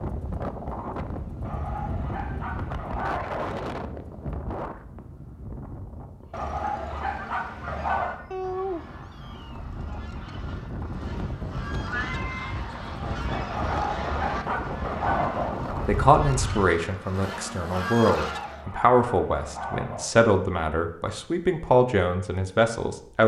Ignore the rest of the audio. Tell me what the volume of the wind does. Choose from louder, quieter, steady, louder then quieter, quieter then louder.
quieter then louder.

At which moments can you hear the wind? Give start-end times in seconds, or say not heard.
0.0-16.7.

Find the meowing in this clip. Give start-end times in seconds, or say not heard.
8.3-9.6, 11.9-13.2.